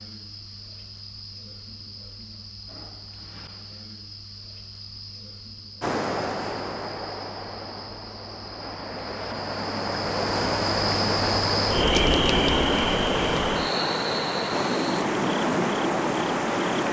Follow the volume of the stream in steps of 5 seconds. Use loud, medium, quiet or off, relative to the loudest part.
off, medium, loud, loud.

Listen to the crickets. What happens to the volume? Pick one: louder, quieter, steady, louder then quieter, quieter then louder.
louder.